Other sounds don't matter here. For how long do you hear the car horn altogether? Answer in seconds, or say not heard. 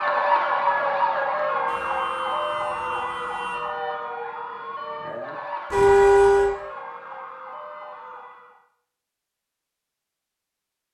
3 s.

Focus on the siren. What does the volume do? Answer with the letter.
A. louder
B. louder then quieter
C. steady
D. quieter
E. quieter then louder
D.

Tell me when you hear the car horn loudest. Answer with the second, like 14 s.
6 s.